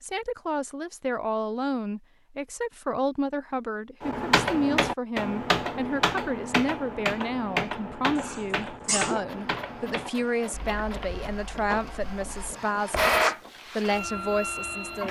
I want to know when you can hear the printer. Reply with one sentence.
The printer can be heard from 9.2 to 15.0 s.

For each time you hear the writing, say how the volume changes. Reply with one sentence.
The writing can't be heard in this clip.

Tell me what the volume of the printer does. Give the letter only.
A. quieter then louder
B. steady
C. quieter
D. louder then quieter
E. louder
D.